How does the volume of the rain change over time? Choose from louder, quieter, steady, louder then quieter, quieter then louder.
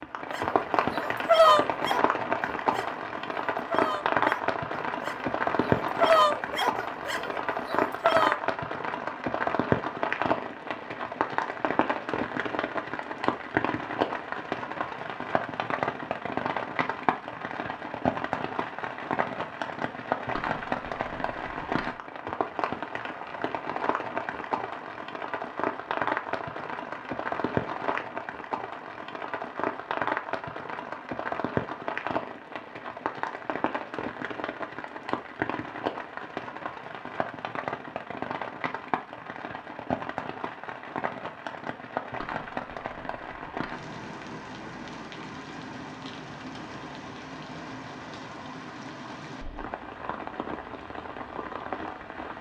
quieter.